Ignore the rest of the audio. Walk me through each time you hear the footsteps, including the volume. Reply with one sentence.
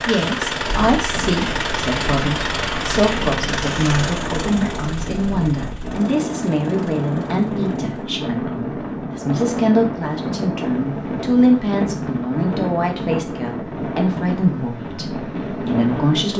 You can't hear the footsteps here.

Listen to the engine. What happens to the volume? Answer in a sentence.
The loudness of the engine goes down.